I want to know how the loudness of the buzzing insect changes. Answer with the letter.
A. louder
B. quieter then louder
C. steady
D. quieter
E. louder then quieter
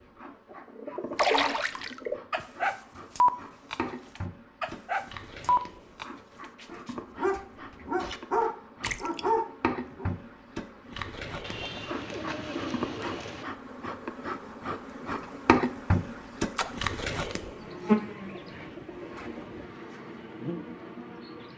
A.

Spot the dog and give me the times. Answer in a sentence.
The dog can be heard from 0.9 to 10.1 s.